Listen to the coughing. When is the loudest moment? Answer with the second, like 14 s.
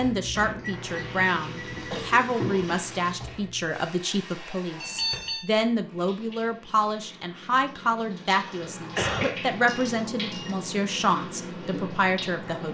9 s.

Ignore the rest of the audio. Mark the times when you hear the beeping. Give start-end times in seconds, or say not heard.
0.3-2.1, 4.8-5.5, 8.6-10.6.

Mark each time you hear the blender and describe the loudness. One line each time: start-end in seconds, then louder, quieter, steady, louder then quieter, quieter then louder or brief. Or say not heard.
not heard.